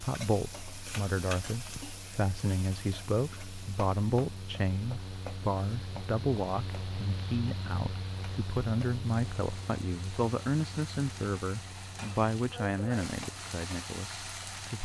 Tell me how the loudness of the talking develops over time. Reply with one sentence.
The volume of the talking stays about the same.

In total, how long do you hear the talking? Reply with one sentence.
You can hear the talking for 15 seconds altogether.